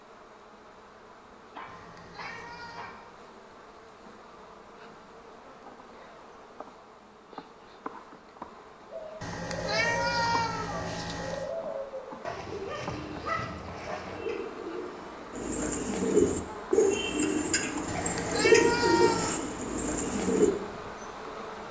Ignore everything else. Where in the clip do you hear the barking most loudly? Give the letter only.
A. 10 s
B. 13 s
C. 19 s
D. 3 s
B.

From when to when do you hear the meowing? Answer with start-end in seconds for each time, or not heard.
1.6-3.0, 9.2-11.5, 17.9-19.4.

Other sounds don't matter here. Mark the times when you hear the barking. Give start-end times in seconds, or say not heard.
1.5-3.0, 12.2-14.2.